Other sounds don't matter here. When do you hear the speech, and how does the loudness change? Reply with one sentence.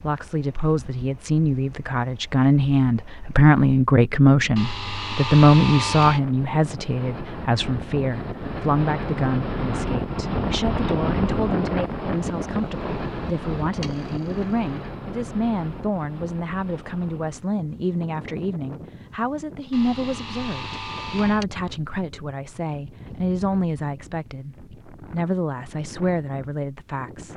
You can hear the speech from 0.0 to 27.3 s, getting quieter.